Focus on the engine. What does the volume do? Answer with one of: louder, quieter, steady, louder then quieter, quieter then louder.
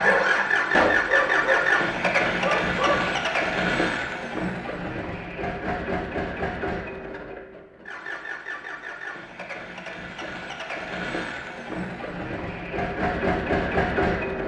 quieter then louder.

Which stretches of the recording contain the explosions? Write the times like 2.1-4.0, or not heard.
0.7-1.1.